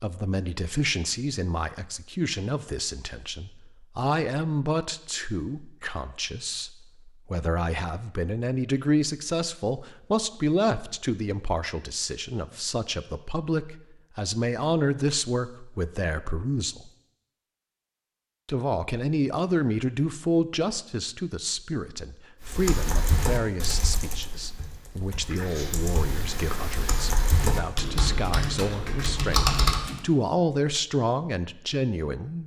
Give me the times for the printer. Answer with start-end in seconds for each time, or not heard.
not heard.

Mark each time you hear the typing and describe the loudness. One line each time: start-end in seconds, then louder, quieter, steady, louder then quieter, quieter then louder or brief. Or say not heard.
22.4-30.0 quieter then louder.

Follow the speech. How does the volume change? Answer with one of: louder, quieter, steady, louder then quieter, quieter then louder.
steady.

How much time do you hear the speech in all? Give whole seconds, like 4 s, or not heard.
31 s.